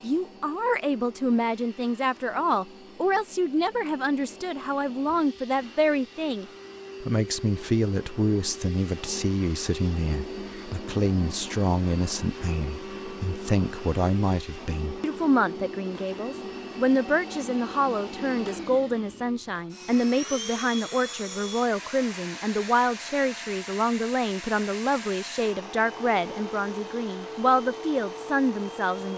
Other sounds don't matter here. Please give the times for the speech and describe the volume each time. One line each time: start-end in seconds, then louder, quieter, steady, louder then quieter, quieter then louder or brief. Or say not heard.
0.0-29.1 steady.